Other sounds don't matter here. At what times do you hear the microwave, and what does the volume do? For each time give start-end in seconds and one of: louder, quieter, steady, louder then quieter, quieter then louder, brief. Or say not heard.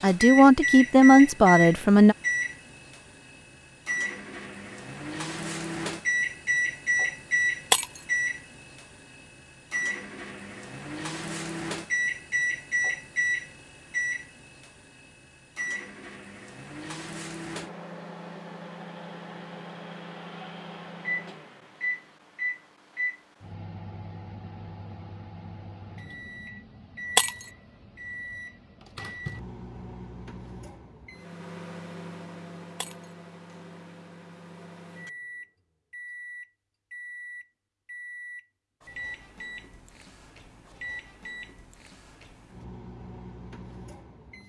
0.0-44.4 quieter.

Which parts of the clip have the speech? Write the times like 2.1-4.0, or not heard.
0.0-2.1.